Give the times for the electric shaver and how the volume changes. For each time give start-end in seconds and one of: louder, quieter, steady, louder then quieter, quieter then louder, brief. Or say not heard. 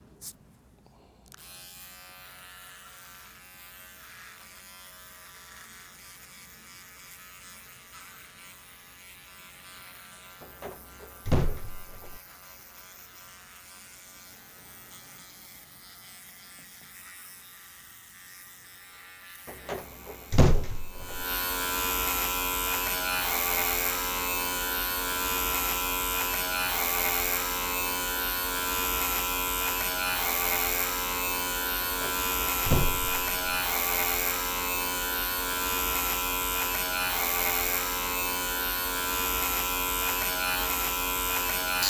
0.0-41.8 louder.